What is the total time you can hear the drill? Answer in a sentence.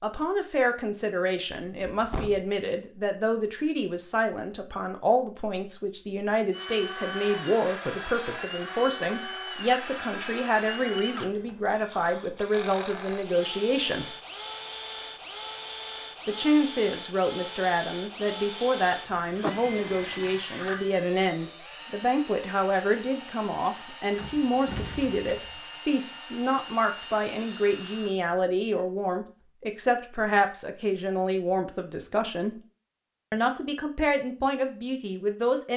The drill can be heard for 22 seconds in total.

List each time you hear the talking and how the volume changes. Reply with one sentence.
You can hear the talking from 0.0 to 14.1 s, at a steady volume; from 16.2 to 32.5 s, at a steady volume; and briefly from 33.3 to 35.7 s.